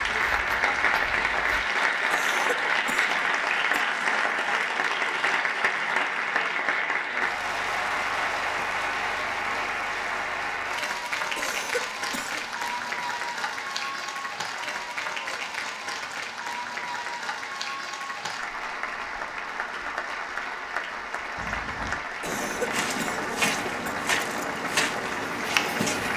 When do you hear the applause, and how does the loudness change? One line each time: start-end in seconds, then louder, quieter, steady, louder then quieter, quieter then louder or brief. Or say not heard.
0.0-26.1 quieter.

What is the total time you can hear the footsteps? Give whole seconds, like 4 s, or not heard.
6 s.